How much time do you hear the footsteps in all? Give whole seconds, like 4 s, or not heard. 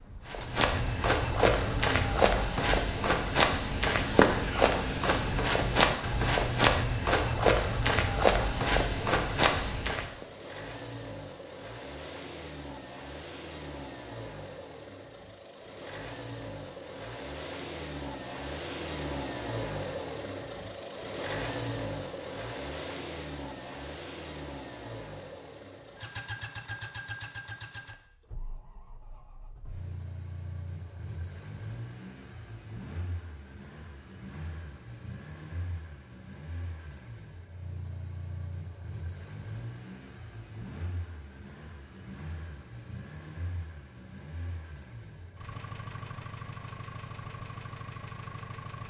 10 s.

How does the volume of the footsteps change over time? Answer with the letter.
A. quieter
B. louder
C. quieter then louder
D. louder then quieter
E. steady
E.